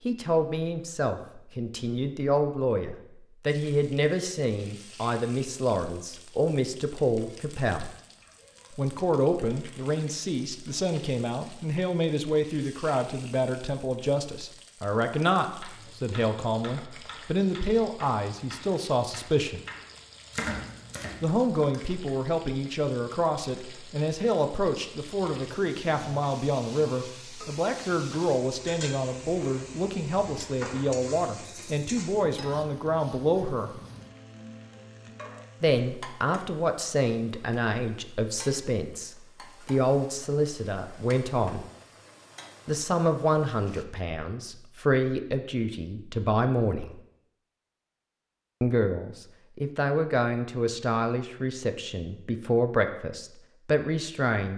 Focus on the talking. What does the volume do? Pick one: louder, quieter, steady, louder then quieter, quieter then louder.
steady.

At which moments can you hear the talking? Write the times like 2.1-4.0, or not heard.
0.1-7.9, 8.8-19.6, 21.2-33.8, 35.6-41.6, 42.6-47.0, 48.6-54.5.